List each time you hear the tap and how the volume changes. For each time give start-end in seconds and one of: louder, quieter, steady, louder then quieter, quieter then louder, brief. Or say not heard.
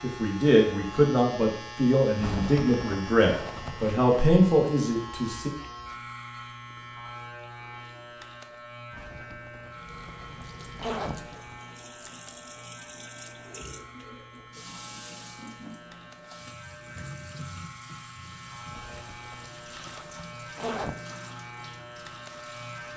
9.7-22.9 steady.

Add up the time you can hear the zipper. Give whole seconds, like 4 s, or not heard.
7 s.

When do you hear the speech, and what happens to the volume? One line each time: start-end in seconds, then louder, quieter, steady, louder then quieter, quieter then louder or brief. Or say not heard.
0.0-5.5 steady.